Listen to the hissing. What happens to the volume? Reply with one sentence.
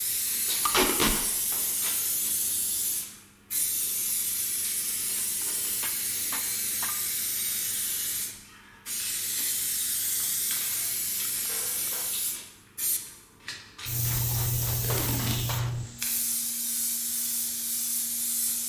The loudness of the hissing stays about the same.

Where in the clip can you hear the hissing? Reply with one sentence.
You can hear the hissing from 0.0 to 18.6 s.